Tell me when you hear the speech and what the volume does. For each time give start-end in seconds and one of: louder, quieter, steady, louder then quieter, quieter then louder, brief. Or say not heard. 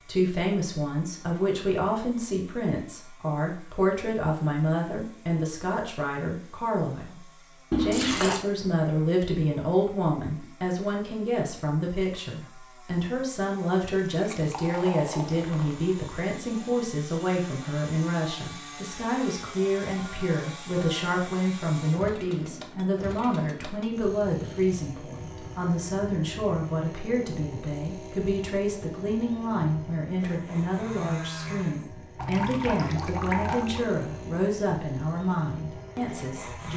0.1-36.7 steady.